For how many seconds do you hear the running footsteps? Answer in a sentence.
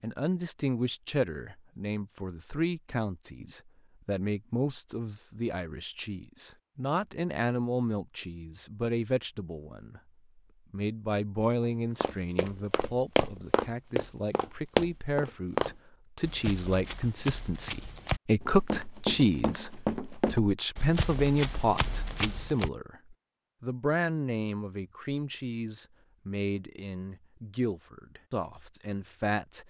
You can hear the running footsteps for 11 seconds altogether.